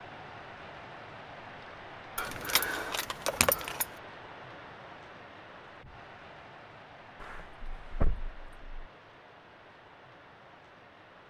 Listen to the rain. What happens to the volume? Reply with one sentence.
The loudness of the rain goes down.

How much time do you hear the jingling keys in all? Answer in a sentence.
You can hear the jingling keys for 3 seconds altogether.